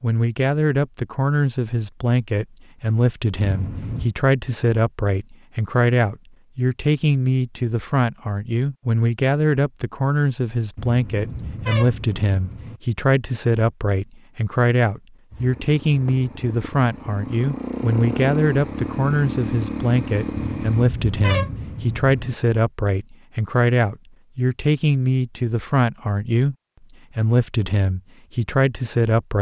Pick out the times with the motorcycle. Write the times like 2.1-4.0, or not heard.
15.3-20.9.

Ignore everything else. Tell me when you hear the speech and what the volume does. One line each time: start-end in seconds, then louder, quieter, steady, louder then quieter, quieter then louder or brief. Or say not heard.
0.0-26.6 steady
27.1-29.3 brief.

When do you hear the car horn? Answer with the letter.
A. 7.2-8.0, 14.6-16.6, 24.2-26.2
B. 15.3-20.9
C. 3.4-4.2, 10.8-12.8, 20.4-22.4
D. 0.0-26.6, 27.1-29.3
C.